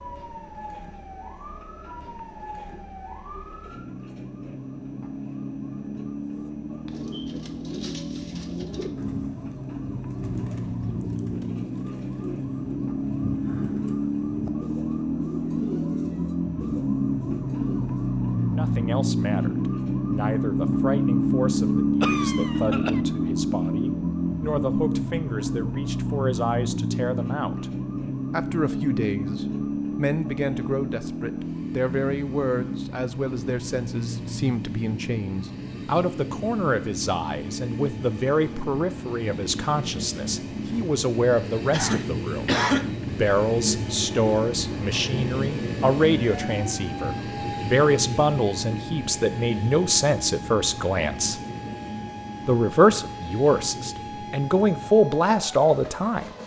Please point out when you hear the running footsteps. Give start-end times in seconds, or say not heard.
not heard.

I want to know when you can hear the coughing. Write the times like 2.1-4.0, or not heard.
22.0-23.0, 41.7-42.9.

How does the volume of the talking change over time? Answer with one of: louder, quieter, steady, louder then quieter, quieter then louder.
louder.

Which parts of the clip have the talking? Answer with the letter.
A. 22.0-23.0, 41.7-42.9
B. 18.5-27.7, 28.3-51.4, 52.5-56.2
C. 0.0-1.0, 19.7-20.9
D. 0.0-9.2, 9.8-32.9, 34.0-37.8
B.